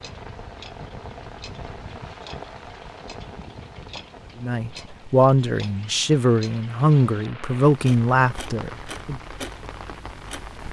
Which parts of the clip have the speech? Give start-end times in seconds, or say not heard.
4.4-9.2.